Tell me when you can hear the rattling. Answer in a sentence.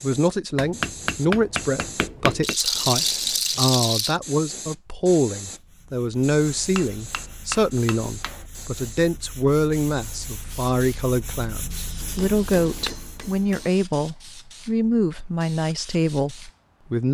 You can hear the rattling from 2.4 to 4.2 s.